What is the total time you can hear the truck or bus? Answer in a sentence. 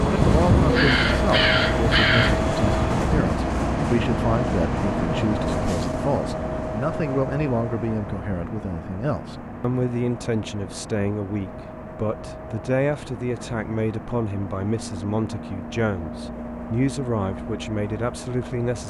The truck or bus can be heard for 19 seconds in total.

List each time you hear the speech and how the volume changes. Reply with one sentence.
You can hear the speech from 0.1 to 18.8 s, at a steady volume.